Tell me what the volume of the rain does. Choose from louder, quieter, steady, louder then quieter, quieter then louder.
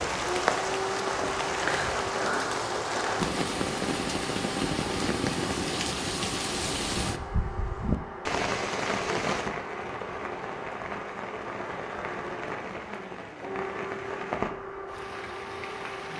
quieter.